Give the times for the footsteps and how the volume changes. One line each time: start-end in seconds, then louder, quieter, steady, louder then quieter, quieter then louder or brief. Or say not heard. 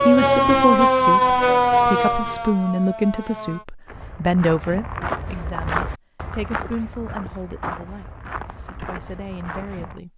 3.9-10.0 quieter.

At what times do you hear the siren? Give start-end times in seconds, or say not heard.
0.0-3.6.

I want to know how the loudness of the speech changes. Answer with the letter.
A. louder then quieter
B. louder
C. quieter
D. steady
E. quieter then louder
C.